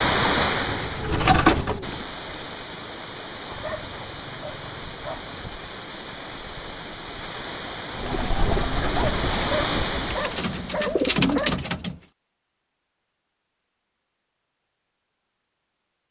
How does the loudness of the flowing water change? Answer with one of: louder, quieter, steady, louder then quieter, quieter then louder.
quieter then louder.